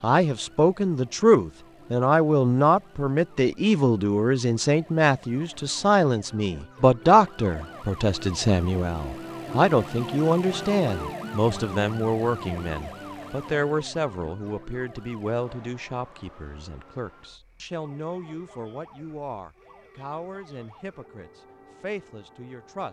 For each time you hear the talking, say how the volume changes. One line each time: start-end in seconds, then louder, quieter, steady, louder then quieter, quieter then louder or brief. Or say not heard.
0.0-22.8 quieter.